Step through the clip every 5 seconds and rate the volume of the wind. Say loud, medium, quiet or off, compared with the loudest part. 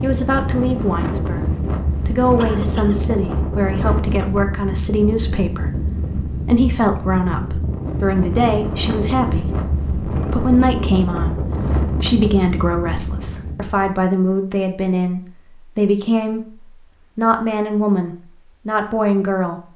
loud, loud, loud, off.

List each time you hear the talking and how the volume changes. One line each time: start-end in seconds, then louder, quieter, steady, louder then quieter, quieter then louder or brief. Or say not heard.
0.0-19.6 steady.